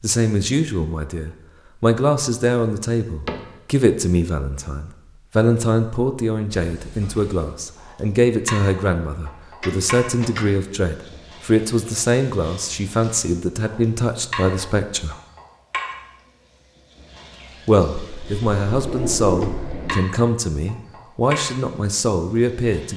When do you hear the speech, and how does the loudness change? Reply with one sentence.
The speech can be heard from 0.0 to 15.2 s, at a steady volume; and from 17.6 to 22.9 s, at a steady volume.